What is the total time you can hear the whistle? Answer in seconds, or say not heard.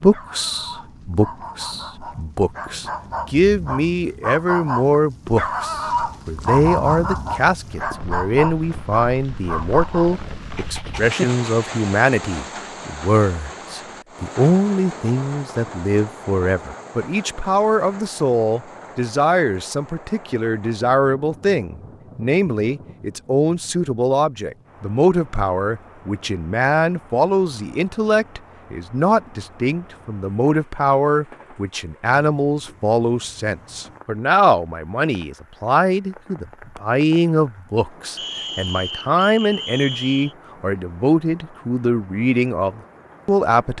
2 s.